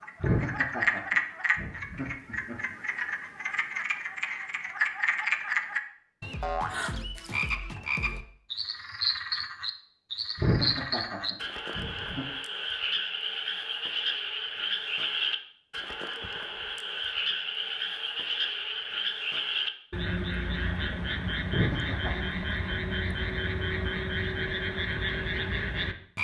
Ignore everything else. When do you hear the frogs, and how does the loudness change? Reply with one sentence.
You can hear the frogs from 0.0 to 26.1 s, at a steady volume.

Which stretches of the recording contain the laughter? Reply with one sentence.
The laughter can be heard from 0.2 to 2.8 s, from 10.3 to 12.2 s and from 21.5 to 22.3 s.